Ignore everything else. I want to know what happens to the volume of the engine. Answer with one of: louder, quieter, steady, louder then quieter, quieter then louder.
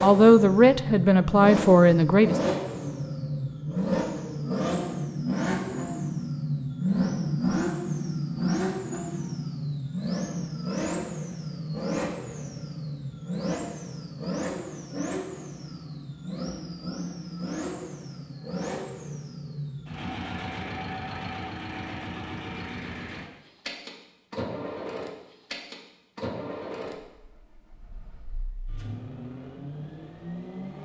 quieter.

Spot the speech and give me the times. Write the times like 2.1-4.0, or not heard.
0.0-2.4.